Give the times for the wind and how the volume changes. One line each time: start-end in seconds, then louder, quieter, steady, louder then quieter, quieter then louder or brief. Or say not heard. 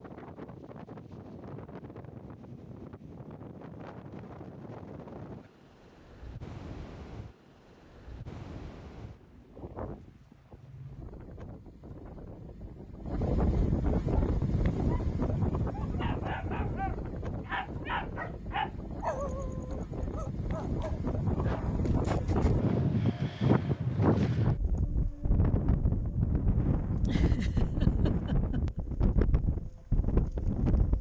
0.0-30.9 louder.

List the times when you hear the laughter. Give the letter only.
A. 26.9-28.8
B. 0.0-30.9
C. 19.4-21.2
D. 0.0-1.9
A.